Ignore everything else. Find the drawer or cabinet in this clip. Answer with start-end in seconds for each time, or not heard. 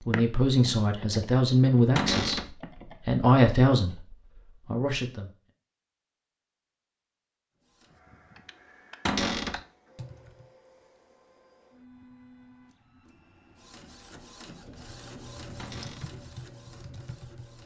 1.9-2.5, 9.1-9.6, 15.6-16.1.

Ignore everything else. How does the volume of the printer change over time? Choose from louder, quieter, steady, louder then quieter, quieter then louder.
louder.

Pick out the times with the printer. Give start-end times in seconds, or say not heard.
7.5-17.6.